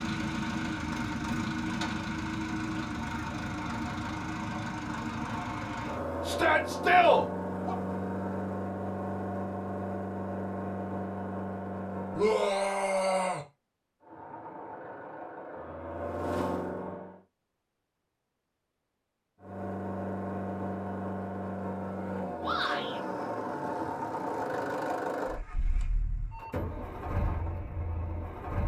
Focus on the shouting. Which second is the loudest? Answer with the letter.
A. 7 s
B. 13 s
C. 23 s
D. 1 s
A.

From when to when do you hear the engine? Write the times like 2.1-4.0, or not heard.
0.0-12.4, 14.0-17.2, 19.4-28.6.